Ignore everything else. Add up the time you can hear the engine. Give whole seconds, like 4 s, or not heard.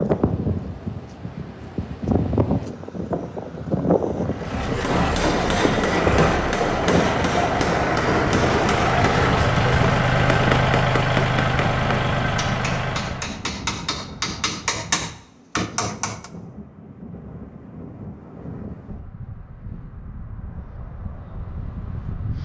9 s.